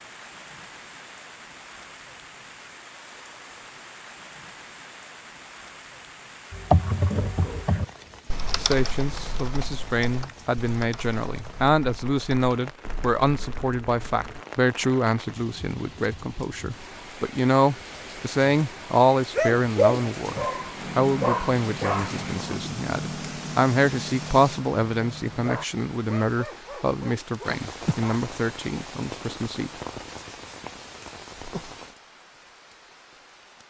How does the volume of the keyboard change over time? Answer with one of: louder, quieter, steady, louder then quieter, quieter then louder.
quieter.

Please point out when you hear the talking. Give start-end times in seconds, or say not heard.
8.6-20.4, 20.9-29.7.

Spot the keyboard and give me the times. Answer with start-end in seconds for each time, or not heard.
6.5-14.4.